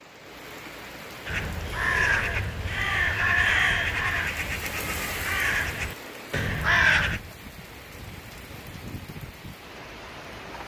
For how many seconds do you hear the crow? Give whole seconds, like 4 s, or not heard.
6 s.